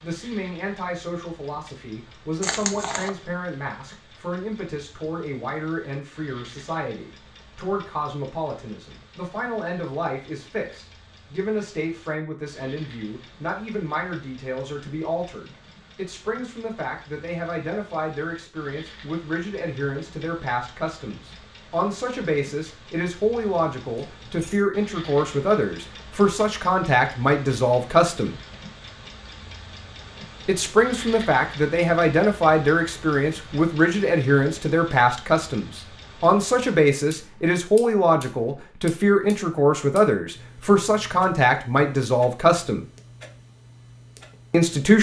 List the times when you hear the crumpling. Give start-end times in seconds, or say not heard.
2.4-3.1.